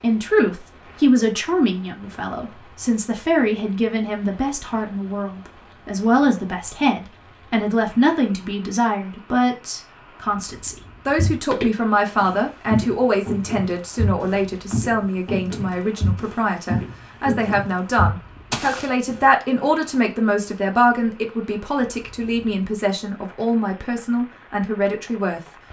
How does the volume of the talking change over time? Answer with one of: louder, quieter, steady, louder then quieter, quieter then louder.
steady.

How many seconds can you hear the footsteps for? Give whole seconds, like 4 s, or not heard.
8 s.